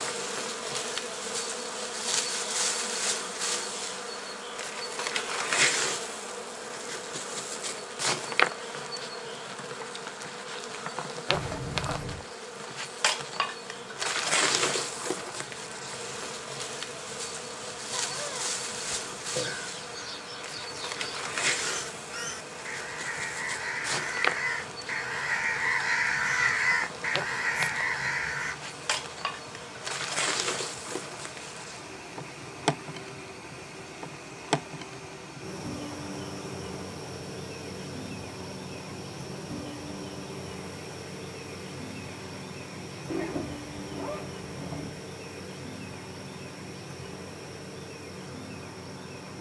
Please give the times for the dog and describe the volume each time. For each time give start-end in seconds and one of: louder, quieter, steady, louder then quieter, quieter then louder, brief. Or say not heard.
not heard.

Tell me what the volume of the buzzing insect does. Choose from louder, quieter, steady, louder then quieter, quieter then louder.
quieter.